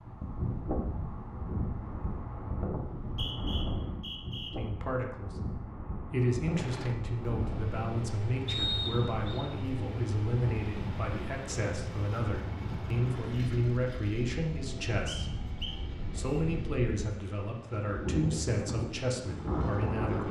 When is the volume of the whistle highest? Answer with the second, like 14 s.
9 s.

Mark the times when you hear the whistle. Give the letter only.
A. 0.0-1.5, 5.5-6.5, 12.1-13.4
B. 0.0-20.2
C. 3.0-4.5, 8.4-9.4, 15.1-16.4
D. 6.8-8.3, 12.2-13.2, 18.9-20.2
C.